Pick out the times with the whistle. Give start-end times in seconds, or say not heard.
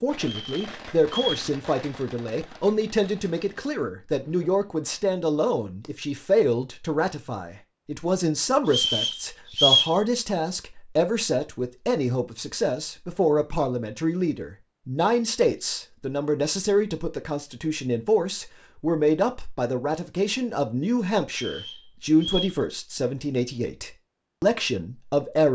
0.2-1.4, 8.7-9.9, 21.3-22.6.